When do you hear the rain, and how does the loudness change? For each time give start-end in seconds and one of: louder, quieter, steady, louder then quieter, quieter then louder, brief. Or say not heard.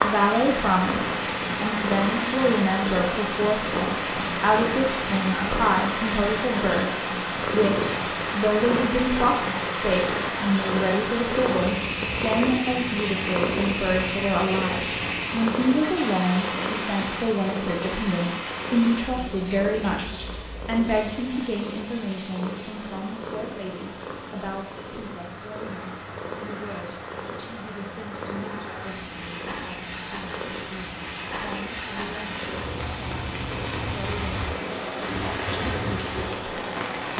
0.0-37.1 quieter then louder.